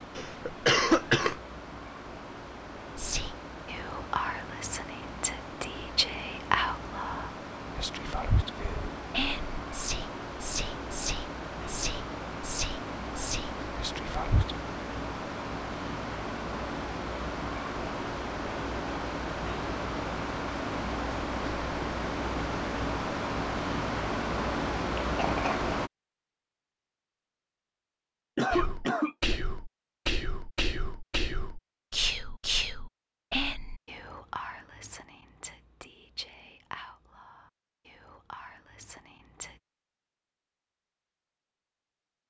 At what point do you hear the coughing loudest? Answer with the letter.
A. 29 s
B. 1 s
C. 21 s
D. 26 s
B.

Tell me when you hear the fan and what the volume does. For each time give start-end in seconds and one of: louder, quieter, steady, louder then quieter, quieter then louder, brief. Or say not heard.
0.0-25.9 louder.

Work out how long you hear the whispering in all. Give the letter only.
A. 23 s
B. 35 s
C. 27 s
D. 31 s
A.